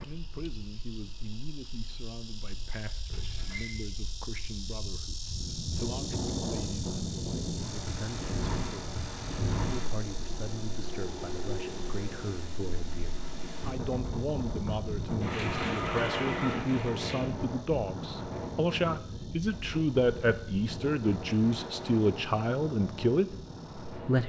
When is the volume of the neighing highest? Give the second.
16 s.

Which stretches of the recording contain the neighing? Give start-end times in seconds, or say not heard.
3.1-3.8, 15.2-17.2.